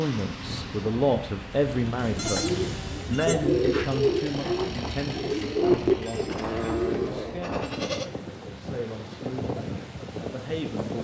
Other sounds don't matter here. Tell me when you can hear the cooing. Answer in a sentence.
You can hear the cooing from 2.1 to 7.2 s.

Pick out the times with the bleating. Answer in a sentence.
The bleating can be heard from 2.1 to 3.5 s and from 6.0 to 8.1 s.